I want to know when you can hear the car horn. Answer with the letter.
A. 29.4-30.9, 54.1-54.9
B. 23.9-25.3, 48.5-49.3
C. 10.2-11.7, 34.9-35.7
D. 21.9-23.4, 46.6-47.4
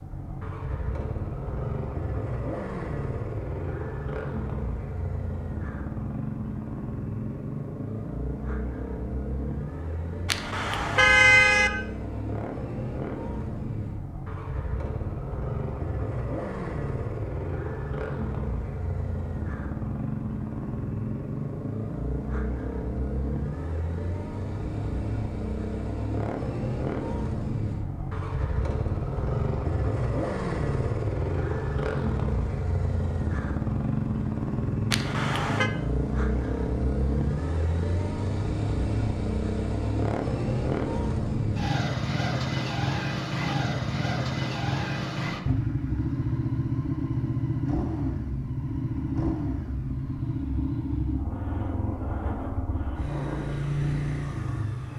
C.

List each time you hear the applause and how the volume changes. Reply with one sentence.
You can't hear the applause here.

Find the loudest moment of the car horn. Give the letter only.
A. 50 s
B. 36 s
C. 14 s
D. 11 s
D.